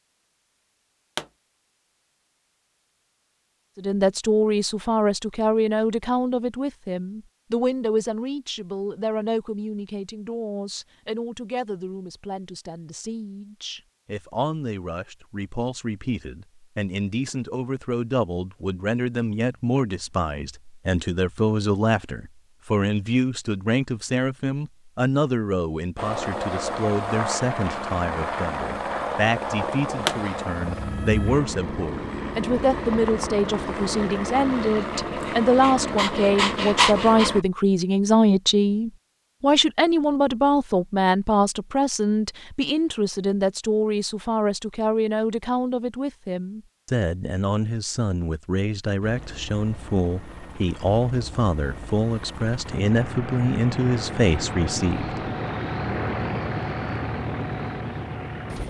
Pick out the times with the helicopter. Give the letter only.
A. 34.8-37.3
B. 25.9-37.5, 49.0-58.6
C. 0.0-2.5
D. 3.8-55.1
B.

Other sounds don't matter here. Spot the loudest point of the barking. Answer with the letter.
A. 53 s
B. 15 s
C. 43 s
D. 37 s
D.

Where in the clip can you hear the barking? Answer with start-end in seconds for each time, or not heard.
34.8-37.3.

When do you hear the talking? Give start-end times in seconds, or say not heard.
3.8-55.1.